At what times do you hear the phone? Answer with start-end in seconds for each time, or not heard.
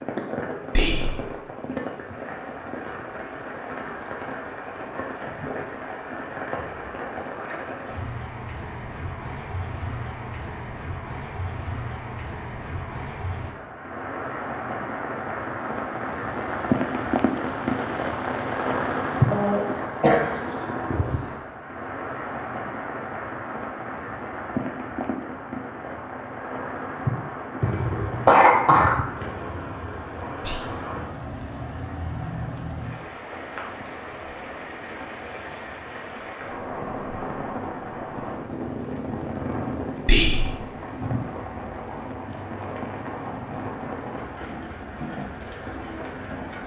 not heard.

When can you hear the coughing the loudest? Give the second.
28 s.